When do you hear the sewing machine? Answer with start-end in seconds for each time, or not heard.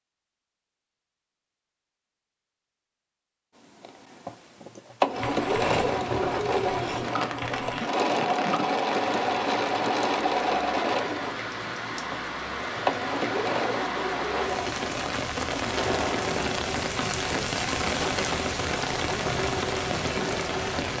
3.8-20.9.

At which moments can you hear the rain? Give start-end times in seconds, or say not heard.
5.1-20.9.